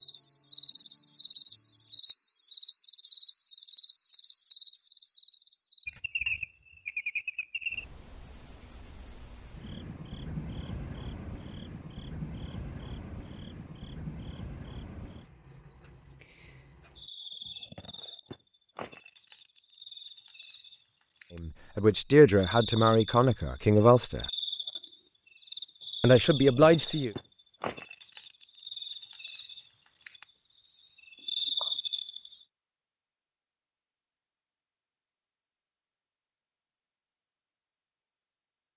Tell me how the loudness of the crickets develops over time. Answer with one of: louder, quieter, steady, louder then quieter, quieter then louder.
quieter then louder.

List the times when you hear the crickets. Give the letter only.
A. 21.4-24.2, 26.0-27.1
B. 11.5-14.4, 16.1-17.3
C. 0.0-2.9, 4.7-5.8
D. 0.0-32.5
D.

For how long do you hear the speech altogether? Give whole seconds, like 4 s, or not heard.
4 s.